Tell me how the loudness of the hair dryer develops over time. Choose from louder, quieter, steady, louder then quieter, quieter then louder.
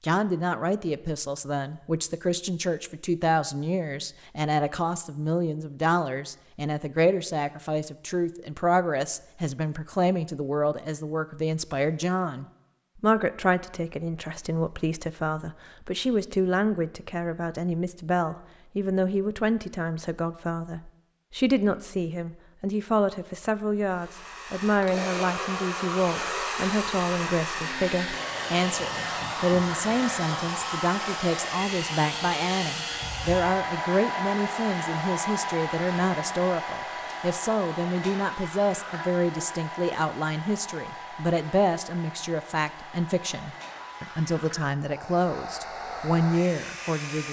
quieter.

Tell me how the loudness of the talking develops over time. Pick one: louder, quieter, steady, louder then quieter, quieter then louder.
steady.